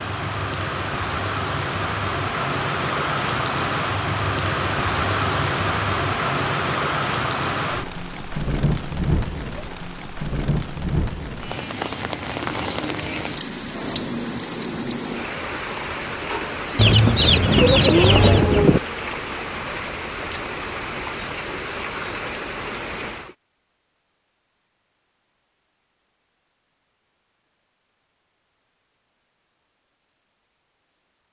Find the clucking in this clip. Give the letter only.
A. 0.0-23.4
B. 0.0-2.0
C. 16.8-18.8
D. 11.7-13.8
C.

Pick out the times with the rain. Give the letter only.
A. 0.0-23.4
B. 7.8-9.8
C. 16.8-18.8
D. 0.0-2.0
A.